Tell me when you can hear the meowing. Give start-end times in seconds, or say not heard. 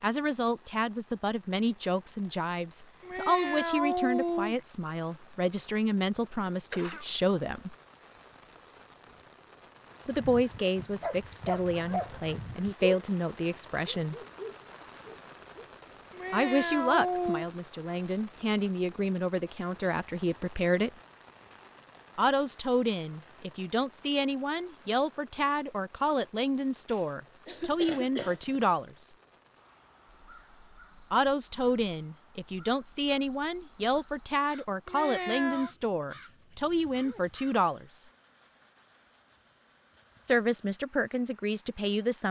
3.0-4.5, 16.1-17.4, 34.9-35.7.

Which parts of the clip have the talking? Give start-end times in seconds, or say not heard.
0.0-7.8, 10.1-14.2, 16.3-20.9, 22.1-29.1, 31.1-38.0, 40.2-42.2.